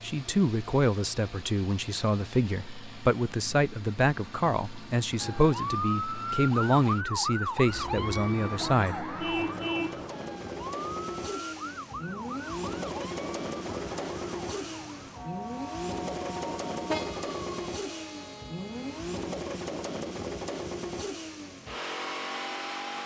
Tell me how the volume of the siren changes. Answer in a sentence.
The volume of the siren goes down.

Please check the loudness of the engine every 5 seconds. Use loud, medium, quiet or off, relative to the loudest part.
medium, medium, loud, loud, loud.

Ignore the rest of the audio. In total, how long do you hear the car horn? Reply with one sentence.
You can hear the car horn for 3 seconds altogether.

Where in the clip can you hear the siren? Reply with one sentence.
You can hear the siren from 5.2 to 17.6 s.